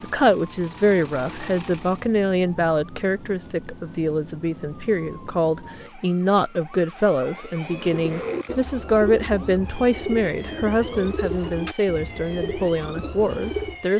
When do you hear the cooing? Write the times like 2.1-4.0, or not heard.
7.7-13.8.